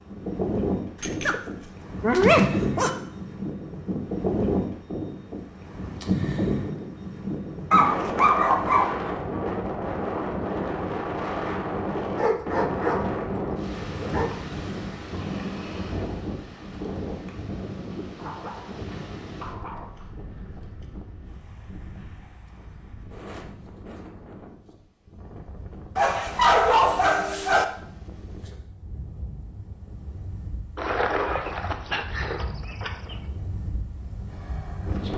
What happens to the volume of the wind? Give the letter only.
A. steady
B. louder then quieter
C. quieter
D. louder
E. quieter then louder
C.